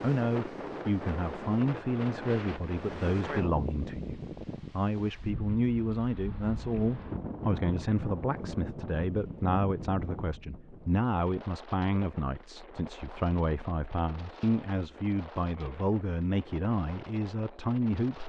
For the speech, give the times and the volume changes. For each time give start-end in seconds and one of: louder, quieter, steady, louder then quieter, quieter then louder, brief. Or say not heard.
0.0-18.2 steady.